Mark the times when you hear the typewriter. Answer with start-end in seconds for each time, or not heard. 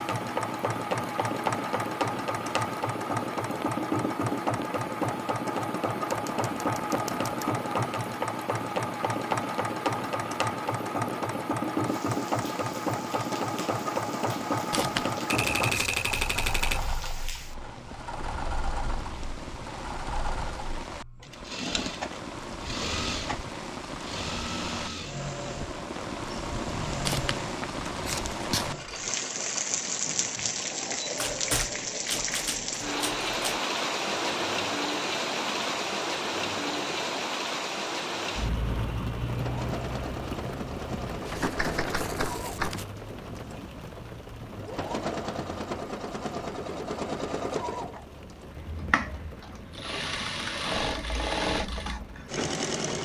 6.1-7.3, 15.3-16.9, 31.1-33.6, 41.3-42.9.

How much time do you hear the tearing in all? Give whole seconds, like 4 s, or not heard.
5 s.